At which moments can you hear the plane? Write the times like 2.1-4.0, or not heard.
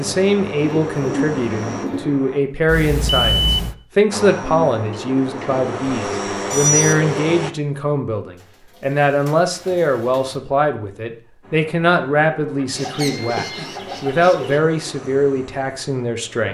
0.0-2.4, 4.1-7.5, 11.4-16.4.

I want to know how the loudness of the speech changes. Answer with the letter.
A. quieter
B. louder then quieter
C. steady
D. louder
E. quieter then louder
C.